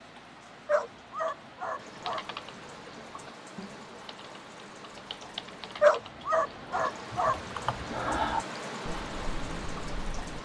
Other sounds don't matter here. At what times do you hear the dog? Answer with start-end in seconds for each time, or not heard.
0.7-2.2, 5.8-7.4.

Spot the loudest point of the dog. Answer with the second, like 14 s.
6 s.